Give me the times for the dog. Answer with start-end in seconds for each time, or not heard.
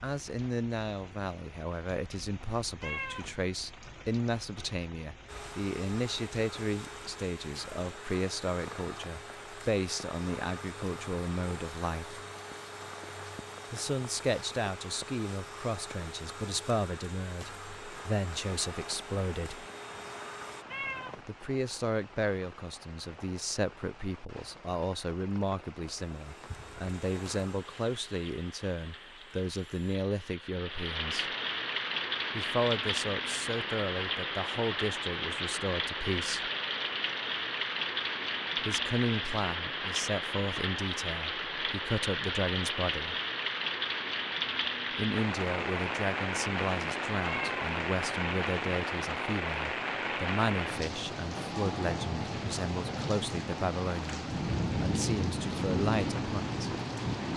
not heard.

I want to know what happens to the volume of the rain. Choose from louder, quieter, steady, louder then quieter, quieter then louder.
louder.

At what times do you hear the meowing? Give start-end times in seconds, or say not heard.
2.8-3.4, 20.6-21.2, 47.2-47.7.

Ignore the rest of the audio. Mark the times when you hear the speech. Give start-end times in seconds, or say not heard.
0.0-12.2, 13.7-19.6, 21.2-31.3, 32.3-36.5, 38.5-43.1, 45.0-56.6.